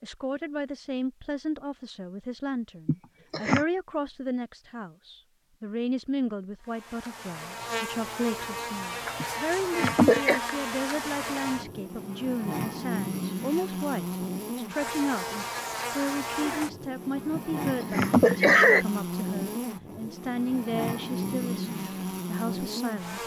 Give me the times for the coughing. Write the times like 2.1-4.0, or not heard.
2.9-3.6, 9.2-10.4, 17.4-18.9.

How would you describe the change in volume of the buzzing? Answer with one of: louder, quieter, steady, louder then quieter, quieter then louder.
steady.